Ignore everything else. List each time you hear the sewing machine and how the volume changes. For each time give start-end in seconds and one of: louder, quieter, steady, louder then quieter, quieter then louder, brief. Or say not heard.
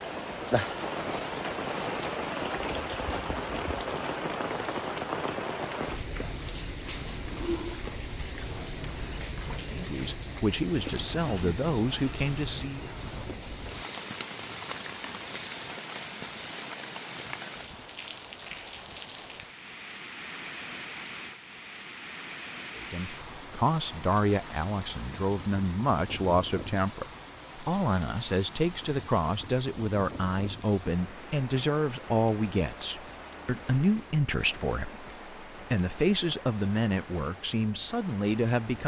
not heard.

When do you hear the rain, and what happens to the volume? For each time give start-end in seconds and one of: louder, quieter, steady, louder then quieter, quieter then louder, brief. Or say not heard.
0.0-38.8 quieter.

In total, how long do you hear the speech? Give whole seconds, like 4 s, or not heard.
19 s.